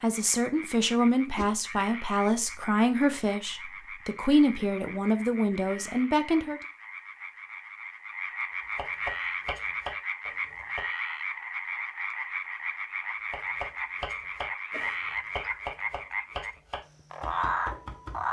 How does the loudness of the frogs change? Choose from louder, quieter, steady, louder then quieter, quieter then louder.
louder.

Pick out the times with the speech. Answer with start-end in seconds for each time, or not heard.
0.0-6.6.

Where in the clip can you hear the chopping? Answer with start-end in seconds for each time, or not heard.
8.8-10.8, 13.3-18.2.